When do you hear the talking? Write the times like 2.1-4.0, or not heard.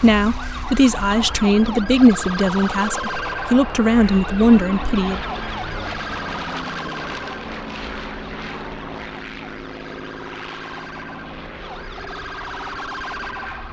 0.0-5.2.